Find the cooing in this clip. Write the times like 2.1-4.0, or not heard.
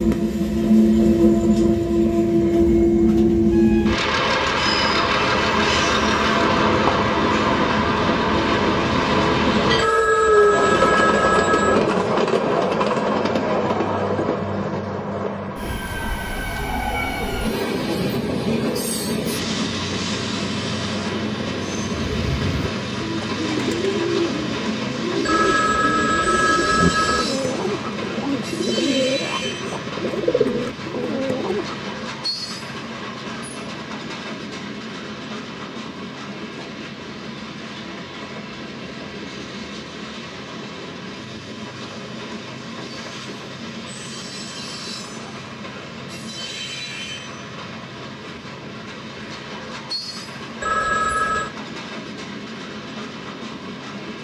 21.9-31.9.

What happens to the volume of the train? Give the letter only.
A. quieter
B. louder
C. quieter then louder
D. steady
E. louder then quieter
A.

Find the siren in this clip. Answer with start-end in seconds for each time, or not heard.
not heard.